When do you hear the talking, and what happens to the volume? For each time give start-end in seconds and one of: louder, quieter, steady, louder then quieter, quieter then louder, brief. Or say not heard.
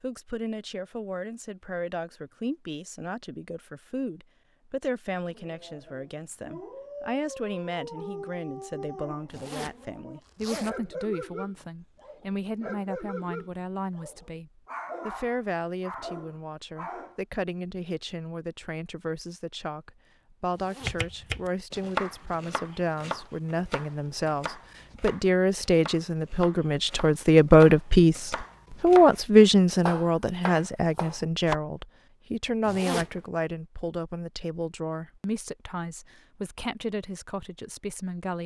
0.0-38.4 louder then quieter.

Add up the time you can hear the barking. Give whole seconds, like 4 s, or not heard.
12 s.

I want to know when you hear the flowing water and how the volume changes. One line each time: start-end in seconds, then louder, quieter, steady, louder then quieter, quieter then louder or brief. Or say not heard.
not heard.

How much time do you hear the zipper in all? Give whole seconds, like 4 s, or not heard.
3 s.